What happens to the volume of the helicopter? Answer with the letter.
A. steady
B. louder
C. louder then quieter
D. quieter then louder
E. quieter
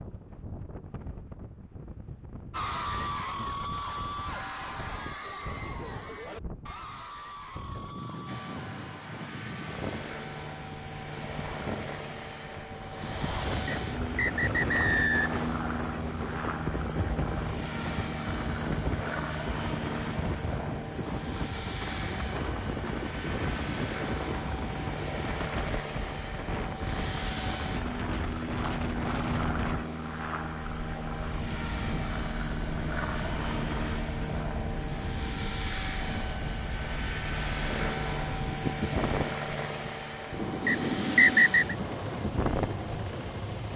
A.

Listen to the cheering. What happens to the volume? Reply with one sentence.
The loudness of the cheering goes down.